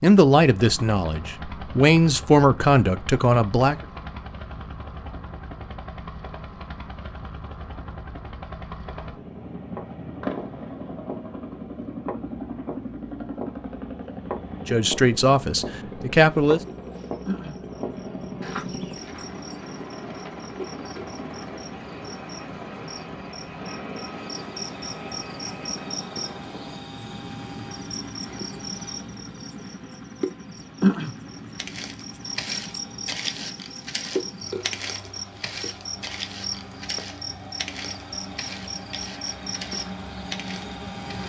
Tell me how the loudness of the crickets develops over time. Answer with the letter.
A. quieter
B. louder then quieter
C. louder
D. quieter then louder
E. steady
B.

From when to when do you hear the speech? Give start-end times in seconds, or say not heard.
0.0-3.8, 14.7-16.6.